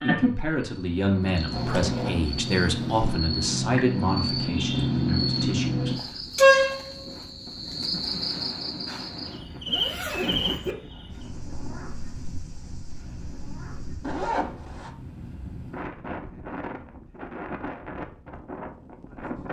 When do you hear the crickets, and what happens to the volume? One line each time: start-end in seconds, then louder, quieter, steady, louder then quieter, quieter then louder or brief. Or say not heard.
0.0-14.2 louder then quieter.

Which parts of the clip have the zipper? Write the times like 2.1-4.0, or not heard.
1.5-3.2, 9.7-10.8, 14.0-14.9.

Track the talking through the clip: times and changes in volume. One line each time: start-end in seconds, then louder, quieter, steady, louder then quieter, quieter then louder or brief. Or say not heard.
0.0-6.2 quieter.